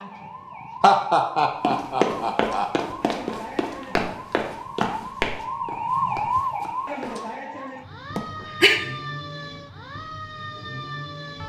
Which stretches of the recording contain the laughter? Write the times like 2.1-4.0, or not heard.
0.8-2.6, 8.2-8.8.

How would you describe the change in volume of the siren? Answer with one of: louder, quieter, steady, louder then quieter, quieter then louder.
louder then quieter.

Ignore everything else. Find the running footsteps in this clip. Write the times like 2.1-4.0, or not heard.
1.6-7.2.